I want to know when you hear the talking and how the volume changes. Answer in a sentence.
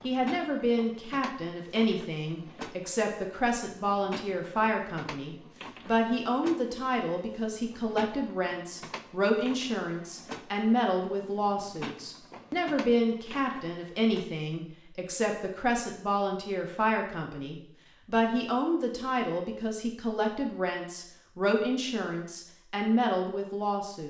The talking can be heard from 0.0 to 24.0 s, at a steady volume.